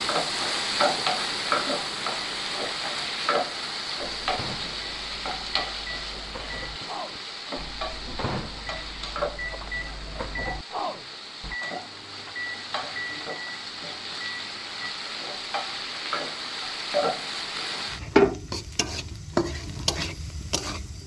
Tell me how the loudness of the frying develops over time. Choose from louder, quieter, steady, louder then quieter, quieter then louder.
quieter then louder.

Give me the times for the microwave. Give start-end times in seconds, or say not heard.
4.0-14.9.